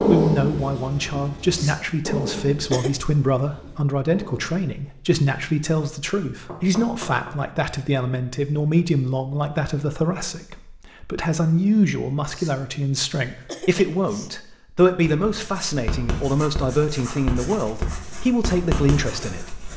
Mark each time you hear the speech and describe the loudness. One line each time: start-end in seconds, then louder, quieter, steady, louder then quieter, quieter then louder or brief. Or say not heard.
0.0-19.5 steady.